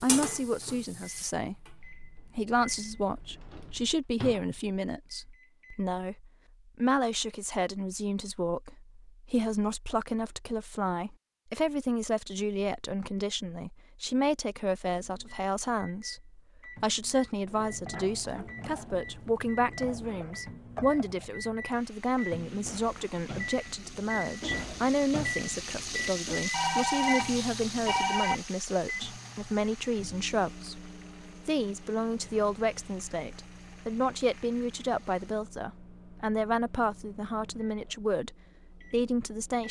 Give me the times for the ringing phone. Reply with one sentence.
You can hear the ringing phone from 26.5 to 28.4 s.